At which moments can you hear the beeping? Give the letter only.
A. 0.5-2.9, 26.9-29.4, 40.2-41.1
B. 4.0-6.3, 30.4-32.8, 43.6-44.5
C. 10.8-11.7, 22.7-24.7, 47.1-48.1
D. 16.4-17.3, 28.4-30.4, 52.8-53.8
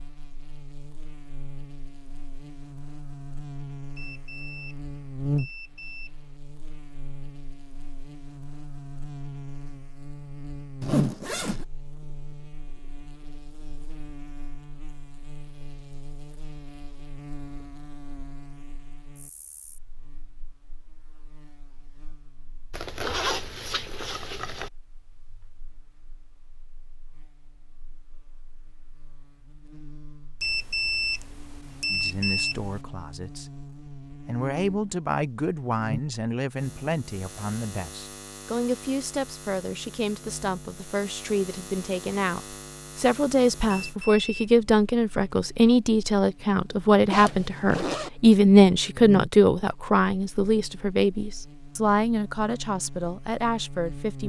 B.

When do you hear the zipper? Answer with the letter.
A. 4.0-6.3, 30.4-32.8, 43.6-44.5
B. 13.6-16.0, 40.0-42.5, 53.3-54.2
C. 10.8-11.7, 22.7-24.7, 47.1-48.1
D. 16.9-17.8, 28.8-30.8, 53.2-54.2
C.